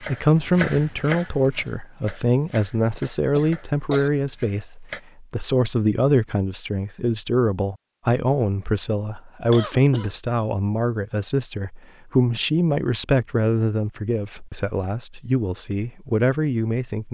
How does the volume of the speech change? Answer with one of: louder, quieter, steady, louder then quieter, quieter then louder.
steady.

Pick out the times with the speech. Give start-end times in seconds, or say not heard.
0.0-17.0.